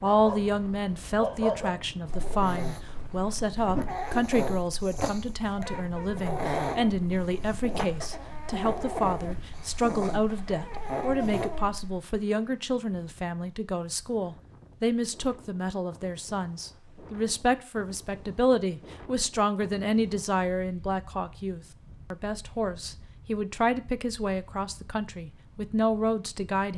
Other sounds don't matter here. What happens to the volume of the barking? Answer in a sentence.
The loudness of the barking stays about the same.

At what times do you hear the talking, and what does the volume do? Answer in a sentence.
The talking can be heard from 0.0 to 26.7 s, at a steady volume.